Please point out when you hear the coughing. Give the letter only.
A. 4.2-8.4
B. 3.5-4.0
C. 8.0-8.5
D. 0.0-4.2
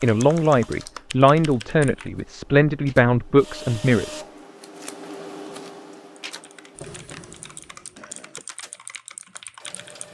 C.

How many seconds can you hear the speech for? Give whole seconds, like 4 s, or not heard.
4 s.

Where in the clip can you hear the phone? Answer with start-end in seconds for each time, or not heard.
not heard.